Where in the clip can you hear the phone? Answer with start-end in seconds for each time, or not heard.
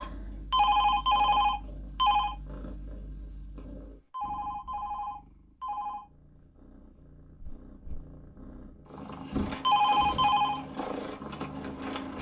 0.5-2.4, 4.1-6.0, 9.6-10.6.